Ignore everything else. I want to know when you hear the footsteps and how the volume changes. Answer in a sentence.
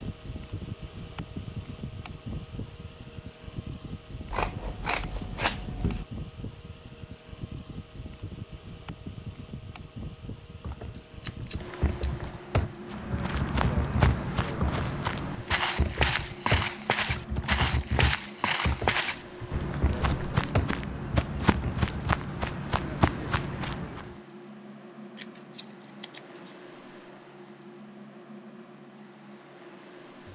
You can hear the footsteps from 12.8 to 24.1 s, at a steady volume.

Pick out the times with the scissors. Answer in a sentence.
The scissors can be heard from 4.3 to 6.0 s, from 10.9 to 12.3 s and from 25.1 to 26.6 s.